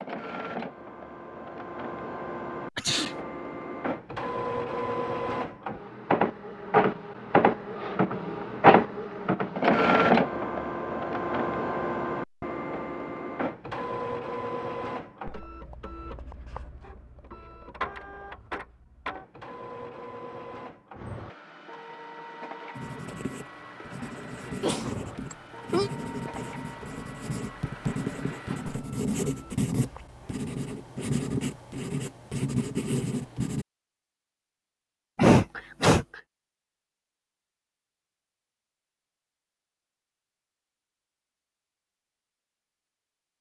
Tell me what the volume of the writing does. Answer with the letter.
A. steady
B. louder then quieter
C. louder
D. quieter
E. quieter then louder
C.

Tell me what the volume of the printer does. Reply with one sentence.
The loudness of the printer goes up, then down.